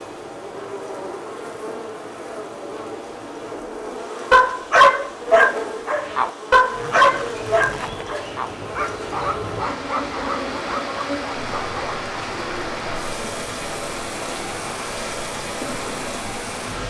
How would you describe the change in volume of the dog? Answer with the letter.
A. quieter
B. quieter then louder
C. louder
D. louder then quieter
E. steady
A.